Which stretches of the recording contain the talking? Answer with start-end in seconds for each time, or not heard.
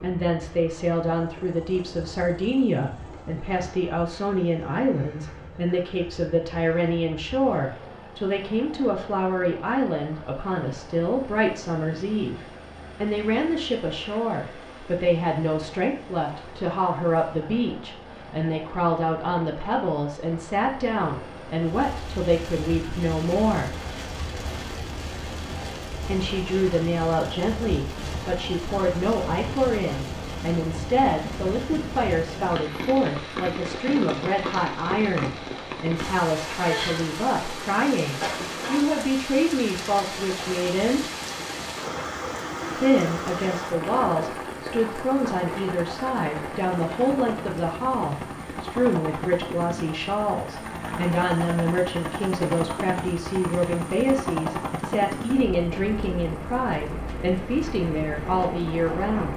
0.0-23.8, 26.1-41.0, 42.8-59.3.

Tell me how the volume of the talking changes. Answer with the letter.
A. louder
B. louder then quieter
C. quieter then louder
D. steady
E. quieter
D.